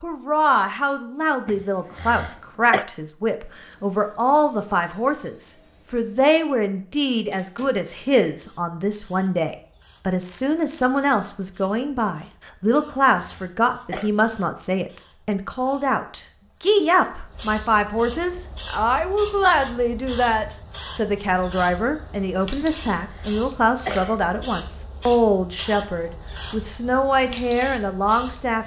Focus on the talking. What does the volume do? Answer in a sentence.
The volume of the talking stays about the same.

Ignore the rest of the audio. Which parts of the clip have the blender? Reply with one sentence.
You can't hear the blender here.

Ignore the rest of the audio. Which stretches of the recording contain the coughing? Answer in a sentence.
You can hear the coughing from 1.4 to 2.9 s, from 12.7 to 14.1 s and from 22.6 to 24.2 s.